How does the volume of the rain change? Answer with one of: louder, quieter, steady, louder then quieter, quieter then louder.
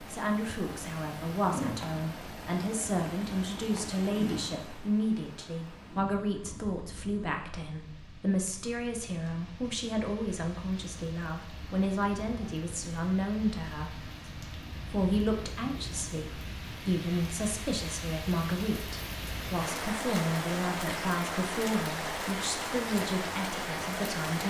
quieter then louder.